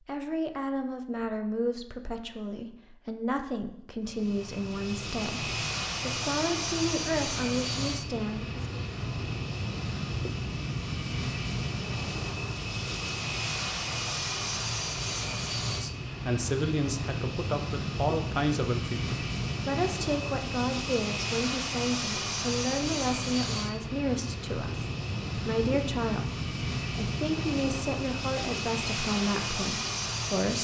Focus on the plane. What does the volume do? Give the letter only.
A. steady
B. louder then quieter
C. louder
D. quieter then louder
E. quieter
A.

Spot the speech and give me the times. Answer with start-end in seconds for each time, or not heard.
0.1-8.6, 15.7-30.5.